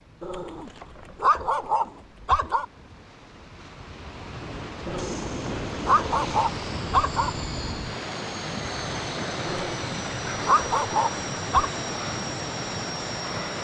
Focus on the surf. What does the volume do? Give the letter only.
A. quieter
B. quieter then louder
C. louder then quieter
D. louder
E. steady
D.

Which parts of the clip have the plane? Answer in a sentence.
The plane can be heard from 5.0 to 13.5 s.